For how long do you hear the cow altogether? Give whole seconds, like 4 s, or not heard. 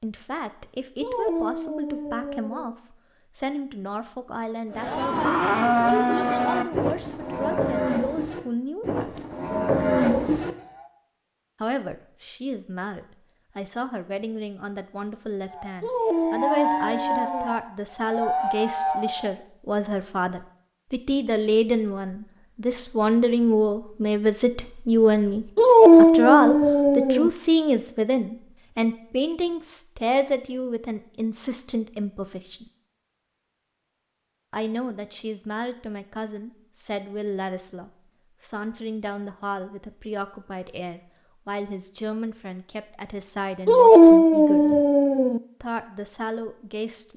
10 s.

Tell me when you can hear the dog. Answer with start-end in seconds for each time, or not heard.
1.0-2.8, 15.8-17.6, 25.6-27.3, 43.6-45.4.